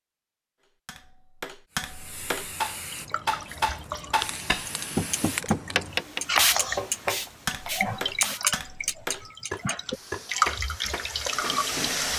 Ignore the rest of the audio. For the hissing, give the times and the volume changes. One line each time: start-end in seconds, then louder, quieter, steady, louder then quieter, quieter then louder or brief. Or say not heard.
1.7-8.4 louder then quieter
9.7-12.1 brief.